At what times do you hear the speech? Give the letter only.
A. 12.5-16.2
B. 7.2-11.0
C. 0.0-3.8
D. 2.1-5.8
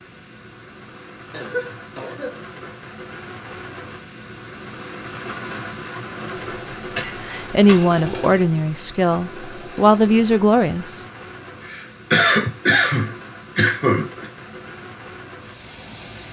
B.